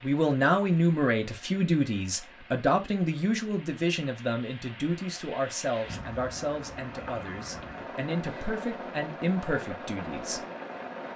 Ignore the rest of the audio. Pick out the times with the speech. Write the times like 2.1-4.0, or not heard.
0.0-10.4.